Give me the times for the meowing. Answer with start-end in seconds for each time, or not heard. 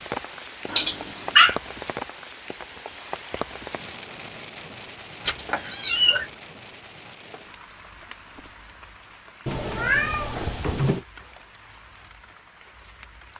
0.7-1.6, 5.2-6.2, 9.4-11.1.